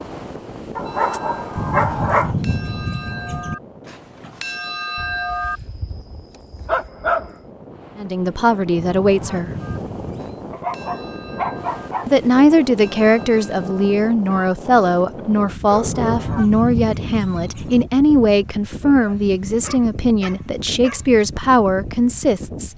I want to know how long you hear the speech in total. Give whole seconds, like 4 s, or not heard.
12 s.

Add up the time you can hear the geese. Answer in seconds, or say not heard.
6 s.